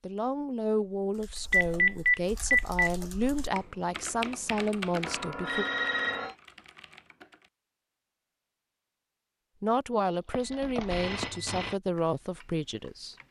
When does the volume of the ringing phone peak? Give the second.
2 s.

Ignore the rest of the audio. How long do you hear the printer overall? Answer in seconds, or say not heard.
not heard.